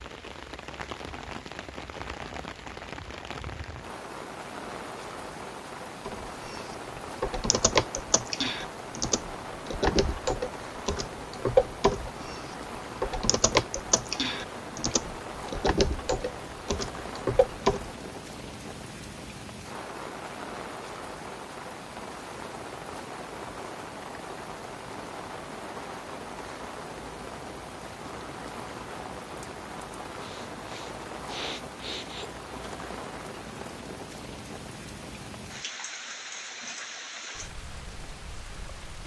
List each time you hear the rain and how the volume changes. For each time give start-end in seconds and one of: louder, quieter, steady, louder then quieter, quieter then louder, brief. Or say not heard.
0.0-39.0 steady.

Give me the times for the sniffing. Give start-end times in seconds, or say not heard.
30.2-32.3.